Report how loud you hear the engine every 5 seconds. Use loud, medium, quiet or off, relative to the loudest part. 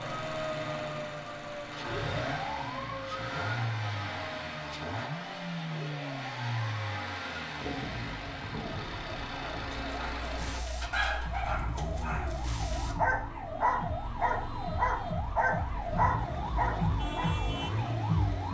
loud, loud, medium, loud.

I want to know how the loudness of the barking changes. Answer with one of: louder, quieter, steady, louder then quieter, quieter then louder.
quieter then louder.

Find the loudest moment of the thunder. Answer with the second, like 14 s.
8 s.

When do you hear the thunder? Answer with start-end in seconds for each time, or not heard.
7.6-9.1.